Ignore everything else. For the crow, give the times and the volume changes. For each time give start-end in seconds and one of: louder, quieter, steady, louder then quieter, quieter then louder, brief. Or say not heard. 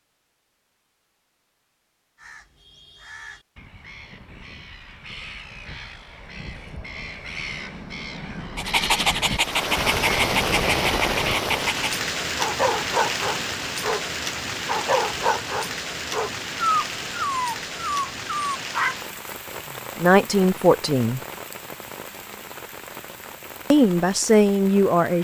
2.1-11.4 louder.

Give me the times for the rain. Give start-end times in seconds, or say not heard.
9.3-25.1.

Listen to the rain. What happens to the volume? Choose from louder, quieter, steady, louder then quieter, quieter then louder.
quieter.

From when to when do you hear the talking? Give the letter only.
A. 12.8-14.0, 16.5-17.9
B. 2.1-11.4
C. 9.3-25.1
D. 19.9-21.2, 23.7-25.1
D.